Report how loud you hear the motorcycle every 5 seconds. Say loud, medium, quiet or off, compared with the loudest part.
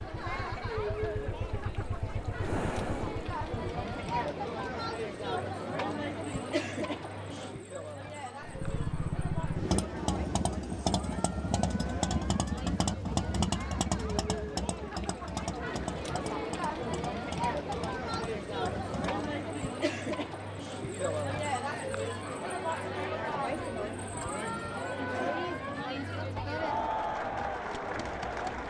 medium, loud, loud, medium, off, off.